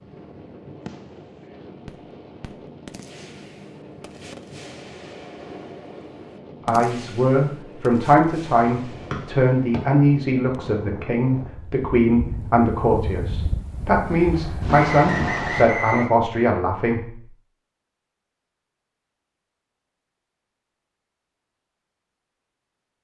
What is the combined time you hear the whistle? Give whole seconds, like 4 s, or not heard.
2 s.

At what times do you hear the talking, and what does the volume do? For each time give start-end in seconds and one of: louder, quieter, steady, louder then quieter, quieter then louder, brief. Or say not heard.
6.7-17.2 steady.